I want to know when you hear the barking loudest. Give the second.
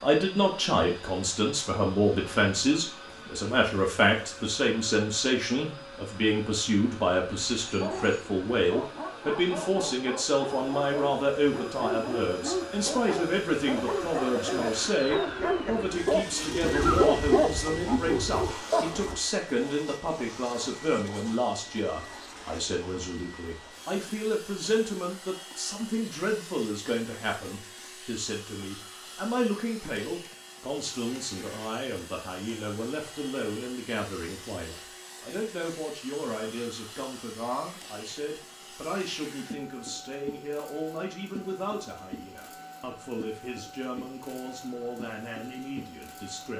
17 s.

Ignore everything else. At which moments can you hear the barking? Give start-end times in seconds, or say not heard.
7.8-19.1.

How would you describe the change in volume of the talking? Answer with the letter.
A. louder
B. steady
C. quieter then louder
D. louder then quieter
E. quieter
E.